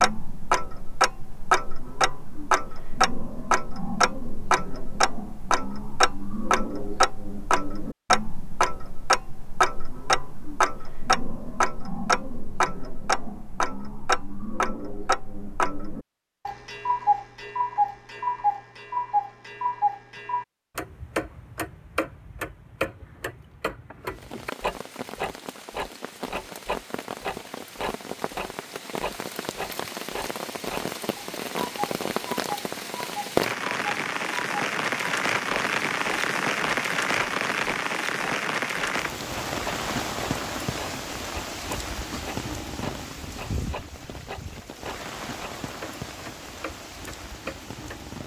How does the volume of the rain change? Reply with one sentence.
The loudness of the rain goes up, then down.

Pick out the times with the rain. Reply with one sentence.
You can hear the rain from 24.1 to 48.2 s.